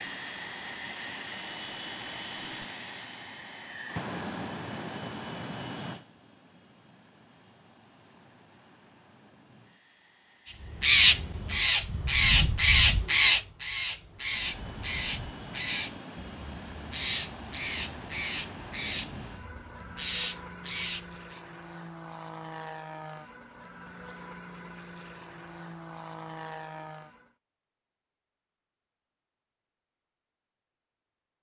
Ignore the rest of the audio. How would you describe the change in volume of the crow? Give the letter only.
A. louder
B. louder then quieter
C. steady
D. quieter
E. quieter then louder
D.